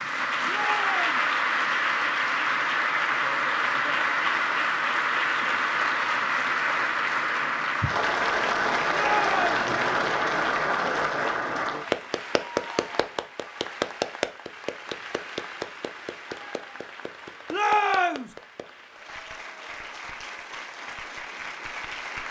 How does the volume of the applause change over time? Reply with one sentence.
The volume of the applause goes down.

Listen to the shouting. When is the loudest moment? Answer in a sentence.
The volume of the shouting peaks at 18 seconds.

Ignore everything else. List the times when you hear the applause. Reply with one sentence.
The applause can be heard from 0.0 to 22.2 s.